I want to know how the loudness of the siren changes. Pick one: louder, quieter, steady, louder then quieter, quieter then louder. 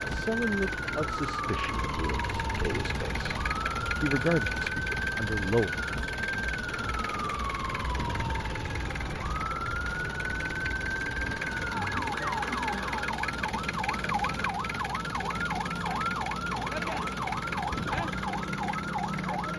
steady.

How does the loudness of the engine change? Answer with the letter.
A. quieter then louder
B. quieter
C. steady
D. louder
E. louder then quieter
C.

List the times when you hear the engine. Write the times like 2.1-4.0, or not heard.
0.0-19.5.